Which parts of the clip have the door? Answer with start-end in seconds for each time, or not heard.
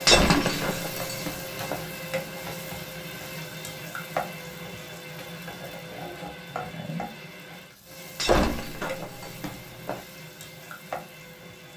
0.1-1.9, 8.2-10.0.